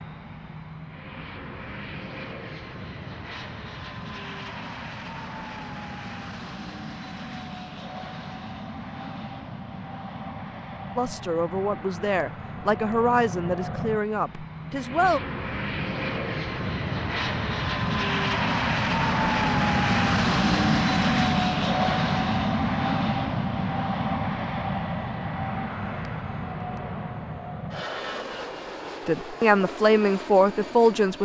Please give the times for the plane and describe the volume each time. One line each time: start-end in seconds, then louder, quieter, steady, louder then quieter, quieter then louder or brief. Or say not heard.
0.0-31.2 louder then quieter.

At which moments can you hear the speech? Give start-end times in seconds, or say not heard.
10.9-15.2, 29.1-31.2.